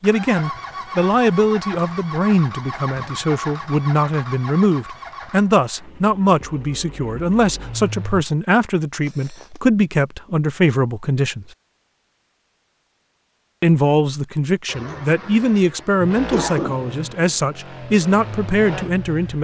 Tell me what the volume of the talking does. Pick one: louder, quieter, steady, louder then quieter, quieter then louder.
steady.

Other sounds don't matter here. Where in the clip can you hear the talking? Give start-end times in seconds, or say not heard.
0.0-11.4, 13.6-19.3.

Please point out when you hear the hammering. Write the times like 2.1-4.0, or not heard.
not heard.